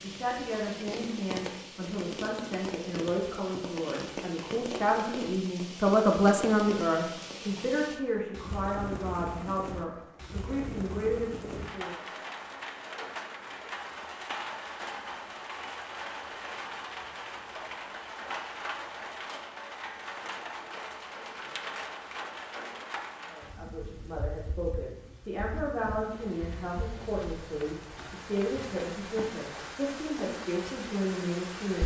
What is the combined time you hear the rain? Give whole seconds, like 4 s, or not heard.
32 s.